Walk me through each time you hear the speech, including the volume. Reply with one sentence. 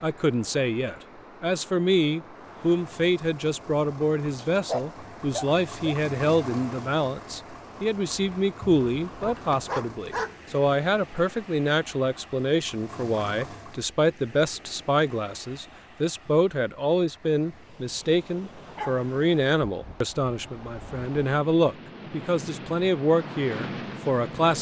The speech can be heard from 0.0 to 24.5 s, at a steady volume.